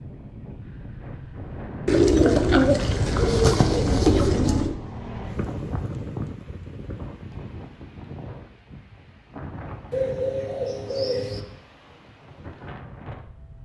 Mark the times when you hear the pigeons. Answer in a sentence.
The pigeons can be heard from 1.9 to 4.8 s and from 9.9 to 11.4 s.